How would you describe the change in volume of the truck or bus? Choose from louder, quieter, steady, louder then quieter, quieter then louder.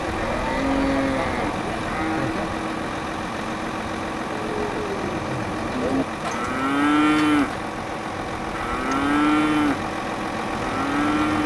steady.